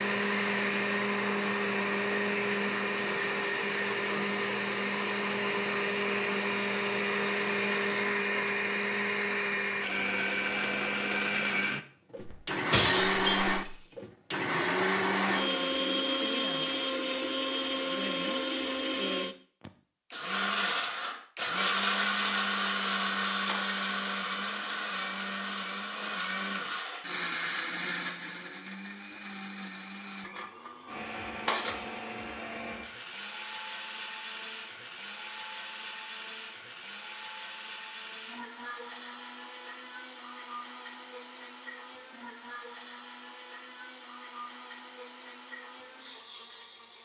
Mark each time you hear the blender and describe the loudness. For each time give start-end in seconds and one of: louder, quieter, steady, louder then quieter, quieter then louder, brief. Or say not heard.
0.0-47.0 quieter.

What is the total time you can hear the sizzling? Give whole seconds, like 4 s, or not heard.
not heard.